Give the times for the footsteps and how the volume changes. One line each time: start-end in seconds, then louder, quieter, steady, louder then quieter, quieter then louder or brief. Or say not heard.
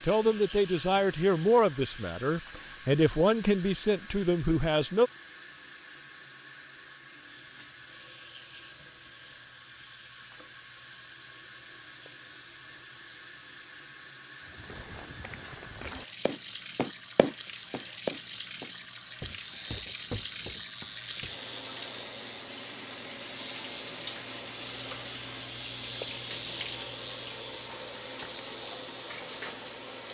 14.4-21.4 louder then quieter.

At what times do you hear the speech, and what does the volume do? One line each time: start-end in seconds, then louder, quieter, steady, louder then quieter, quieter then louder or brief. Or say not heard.
0.0-5.1 steady.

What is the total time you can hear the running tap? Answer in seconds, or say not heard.
30 s.